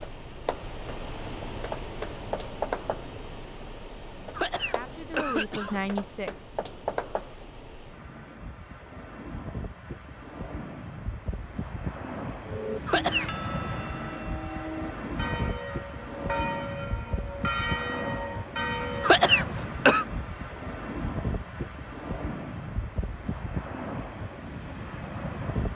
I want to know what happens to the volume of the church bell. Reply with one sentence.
The loudness of the church bell goes up.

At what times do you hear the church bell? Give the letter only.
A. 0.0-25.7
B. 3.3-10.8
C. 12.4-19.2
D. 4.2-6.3
C.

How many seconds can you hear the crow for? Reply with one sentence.
The crow can't be heard in this clip.